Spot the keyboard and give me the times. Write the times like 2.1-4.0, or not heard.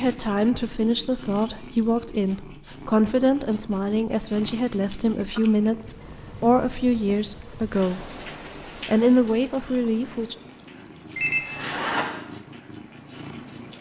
not heard.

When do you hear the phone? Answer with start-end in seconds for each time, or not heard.
11.2-12.1.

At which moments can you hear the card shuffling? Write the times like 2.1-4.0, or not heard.
not heard.